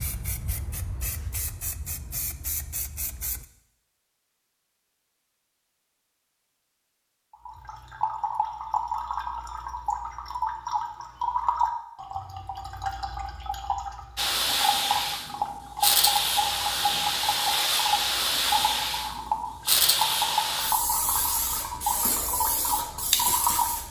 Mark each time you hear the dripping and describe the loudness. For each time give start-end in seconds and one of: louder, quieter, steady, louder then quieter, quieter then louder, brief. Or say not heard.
7.3-23.8 steady.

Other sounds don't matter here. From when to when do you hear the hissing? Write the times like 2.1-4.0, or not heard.
0.0-3.5, 14.2-23.8.